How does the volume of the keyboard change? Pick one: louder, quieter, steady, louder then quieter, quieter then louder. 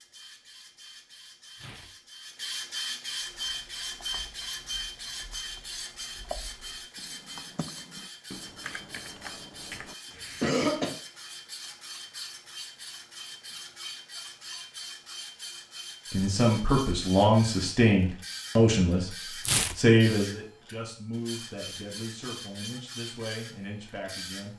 louder.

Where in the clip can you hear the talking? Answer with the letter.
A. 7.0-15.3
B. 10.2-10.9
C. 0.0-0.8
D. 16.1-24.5
D.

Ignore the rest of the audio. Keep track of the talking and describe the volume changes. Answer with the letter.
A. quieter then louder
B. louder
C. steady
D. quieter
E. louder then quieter
D.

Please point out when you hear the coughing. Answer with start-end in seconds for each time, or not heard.
10.2-10.9.